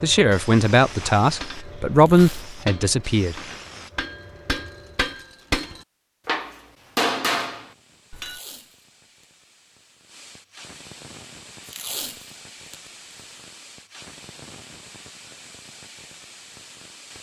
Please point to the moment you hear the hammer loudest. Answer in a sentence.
The loudest moment of the hammer is at 7 seconds.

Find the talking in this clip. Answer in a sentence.
The talking can be heard from 0.0 to 3.4 s.